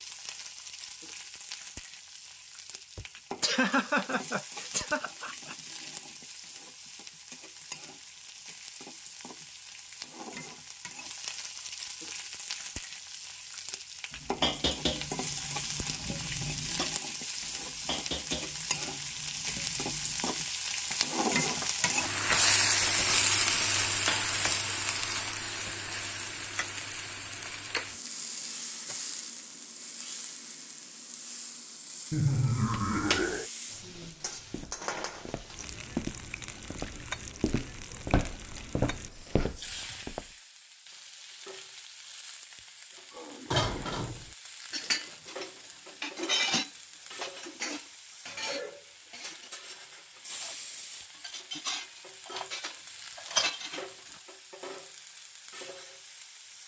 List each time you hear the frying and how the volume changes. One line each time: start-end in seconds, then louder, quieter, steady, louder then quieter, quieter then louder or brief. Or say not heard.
0.0-56.6 louder then quieter.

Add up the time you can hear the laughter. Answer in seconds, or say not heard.
5 s.